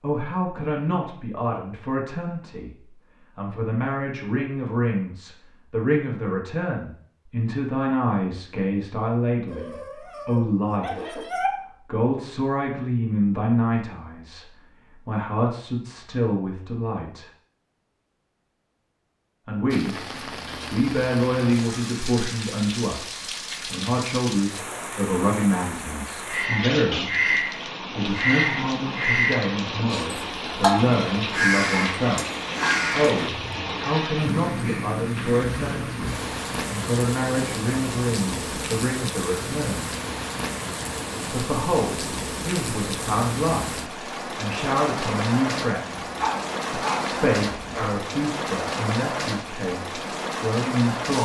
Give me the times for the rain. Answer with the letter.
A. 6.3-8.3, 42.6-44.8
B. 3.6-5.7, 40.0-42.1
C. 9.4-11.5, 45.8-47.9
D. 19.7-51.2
D.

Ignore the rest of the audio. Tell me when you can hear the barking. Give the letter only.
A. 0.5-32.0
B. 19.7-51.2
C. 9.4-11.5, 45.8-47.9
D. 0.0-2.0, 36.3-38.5
C.